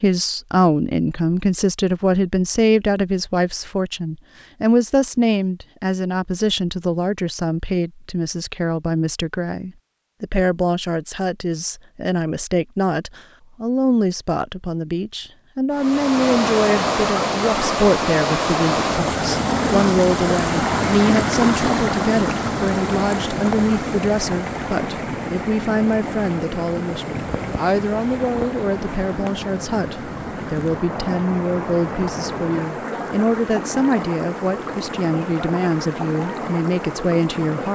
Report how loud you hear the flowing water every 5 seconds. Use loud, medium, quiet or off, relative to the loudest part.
off, off, off, loud, loud, medium, medium, medium.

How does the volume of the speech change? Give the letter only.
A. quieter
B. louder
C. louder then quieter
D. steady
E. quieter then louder
D.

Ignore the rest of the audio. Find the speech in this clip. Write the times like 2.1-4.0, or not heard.
0.0-37.7.